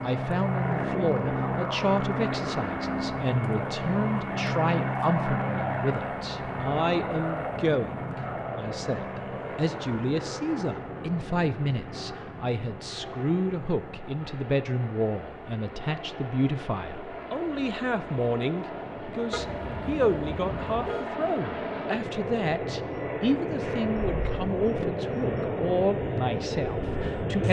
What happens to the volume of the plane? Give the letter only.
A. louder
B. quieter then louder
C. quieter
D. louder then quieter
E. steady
B.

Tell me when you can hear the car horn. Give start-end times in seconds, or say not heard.
19.3-21.1.